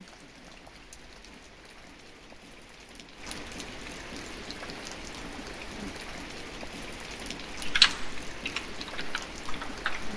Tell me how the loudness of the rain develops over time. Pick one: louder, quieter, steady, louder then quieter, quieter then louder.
louder.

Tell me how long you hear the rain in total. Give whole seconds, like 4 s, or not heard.
10 s.